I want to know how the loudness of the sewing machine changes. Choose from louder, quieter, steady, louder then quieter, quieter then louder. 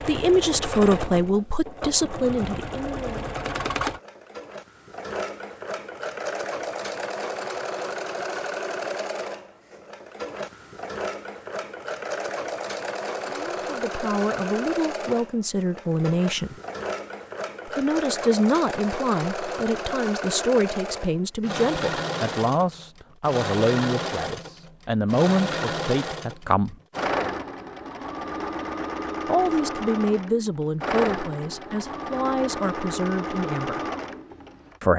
steady.